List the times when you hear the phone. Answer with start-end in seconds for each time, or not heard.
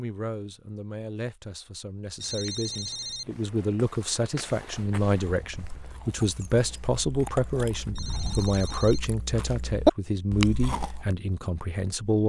2.1-3.4, 7.9-9.1.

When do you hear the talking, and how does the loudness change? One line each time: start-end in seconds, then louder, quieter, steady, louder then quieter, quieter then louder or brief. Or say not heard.
0.0-12.2 louder.